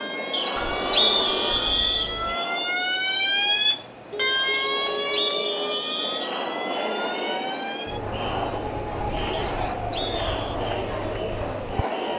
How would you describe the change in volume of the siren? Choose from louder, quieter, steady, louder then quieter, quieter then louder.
louder then quieter.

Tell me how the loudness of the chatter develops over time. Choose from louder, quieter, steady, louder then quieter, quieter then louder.
quieter then louder.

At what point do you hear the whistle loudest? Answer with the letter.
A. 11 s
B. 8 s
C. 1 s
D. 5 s
C.